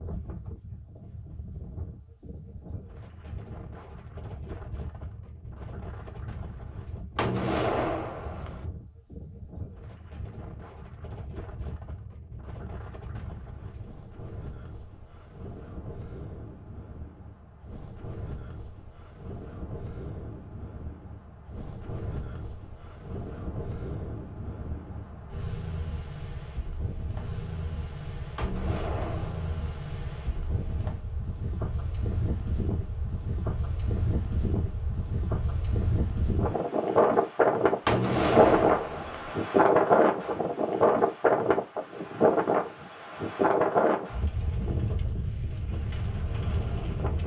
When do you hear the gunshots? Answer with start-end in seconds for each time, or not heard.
7.2-8.7, 28.4-29.6, 37.9-39.4.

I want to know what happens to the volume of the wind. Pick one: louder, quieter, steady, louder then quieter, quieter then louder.
louder.